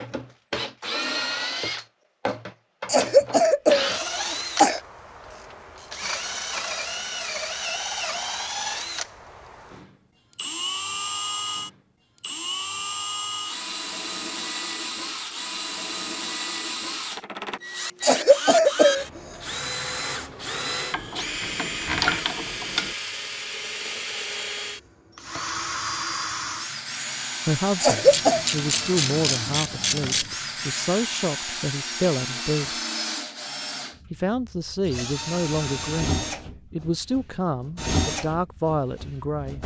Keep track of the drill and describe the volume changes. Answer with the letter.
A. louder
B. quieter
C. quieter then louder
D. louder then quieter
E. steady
E.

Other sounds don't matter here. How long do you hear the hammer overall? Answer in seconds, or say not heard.
not heard.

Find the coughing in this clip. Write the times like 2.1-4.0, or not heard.
2.9-4.8, 18.0-19.1, 27.8-28.4.